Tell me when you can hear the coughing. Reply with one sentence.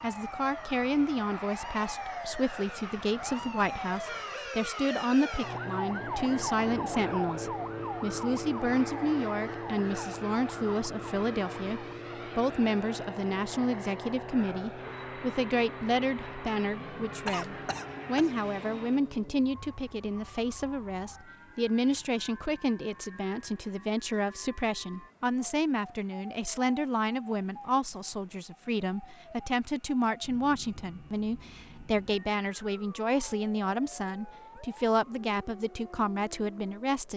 You can hear the coughing from 17.2 to 18.8 s.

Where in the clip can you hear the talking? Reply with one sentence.
The talking can be heard from 0.0 to 37.1 s.